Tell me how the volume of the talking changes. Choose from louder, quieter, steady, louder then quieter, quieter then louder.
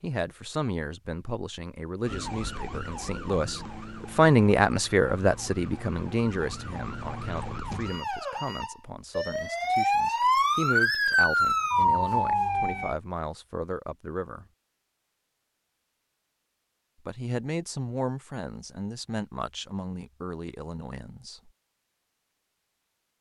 louder then quieter.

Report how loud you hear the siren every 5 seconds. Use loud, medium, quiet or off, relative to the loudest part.
quiet, medium, loud, off, off.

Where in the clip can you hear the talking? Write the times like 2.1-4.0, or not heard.
0.0-14.4, 17.1-21.5.